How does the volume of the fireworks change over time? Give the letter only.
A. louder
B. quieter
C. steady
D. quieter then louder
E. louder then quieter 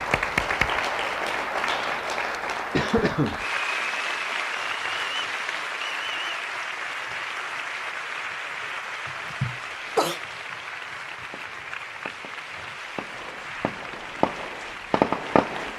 A.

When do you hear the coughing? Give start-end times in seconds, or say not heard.
2.7-3.5, 9.1-10.2.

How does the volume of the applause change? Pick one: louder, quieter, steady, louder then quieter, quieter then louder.
quieter.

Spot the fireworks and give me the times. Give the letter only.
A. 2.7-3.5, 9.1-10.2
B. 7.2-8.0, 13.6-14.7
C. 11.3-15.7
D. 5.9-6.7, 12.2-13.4
C.